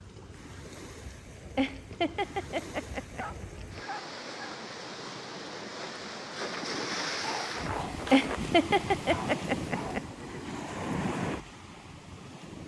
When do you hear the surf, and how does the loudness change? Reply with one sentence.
You can hear the surf from 0.0 to 12.6 s, getting louder.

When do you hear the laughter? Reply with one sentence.
The laughter can be heard from 1.6 to 3.2 s and from 8.1 to 10.0 s.